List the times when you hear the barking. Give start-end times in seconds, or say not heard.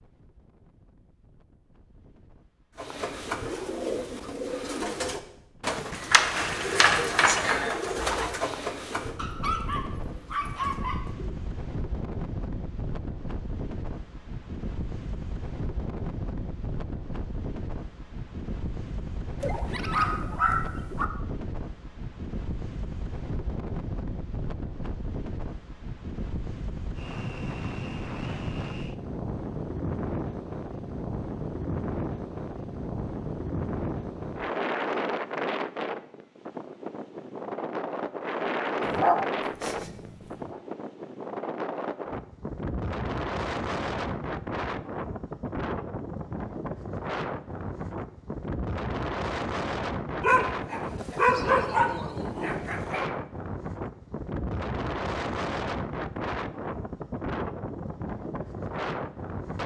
9.2-11.1, 19.4-21.1, 38.9-40.5, 50.2-53.0.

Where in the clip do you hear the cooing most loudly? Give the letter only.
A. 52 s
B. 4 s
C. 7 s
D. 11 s
C.